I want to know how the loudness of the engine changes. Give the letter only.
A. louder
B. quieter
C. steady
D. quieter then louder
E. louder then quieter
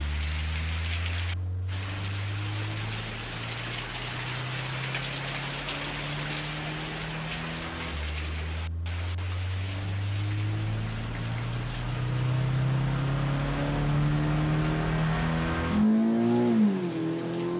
A.